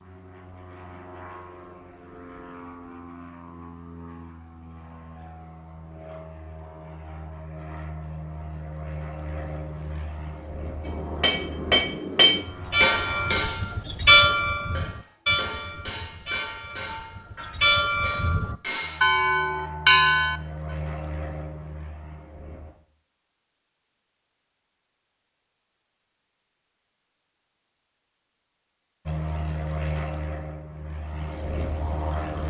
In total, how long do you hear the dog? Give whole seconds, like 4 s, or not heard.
not heard.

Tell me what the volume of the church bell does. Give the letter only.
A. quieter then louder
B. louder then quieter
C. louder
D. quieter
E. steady
A.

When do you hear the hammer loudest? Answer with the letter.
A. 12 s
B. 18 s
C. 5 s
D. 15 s
A.